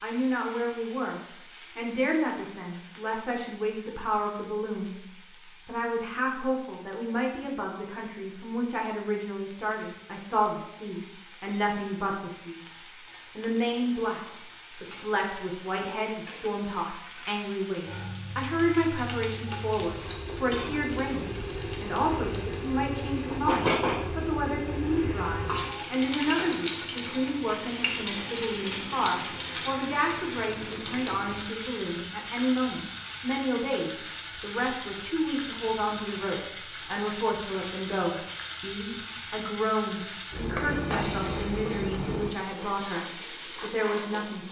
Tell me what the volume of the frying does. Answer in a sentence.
The loudness of the frying goes up.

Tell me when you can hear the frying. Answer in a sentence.
The frying can be heard from 0.0 to 44.4 s.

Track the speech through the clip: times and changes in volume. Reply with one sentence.
The speech can be heard from 0.0 to 12.6 s, at a steady volume; and from 13.3 to 44.4 s, at a steady volume.